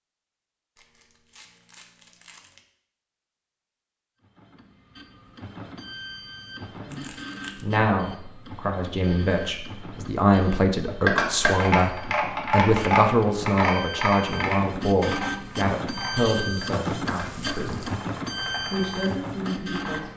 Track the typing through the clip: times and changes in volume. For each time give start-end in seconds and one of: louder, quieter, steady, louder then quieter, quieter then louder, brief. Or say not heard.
11.1-20.1 quieter.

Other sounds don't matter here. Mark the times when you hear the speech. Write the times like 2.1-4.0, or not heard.
6.8-17.9, 18.7-20.1.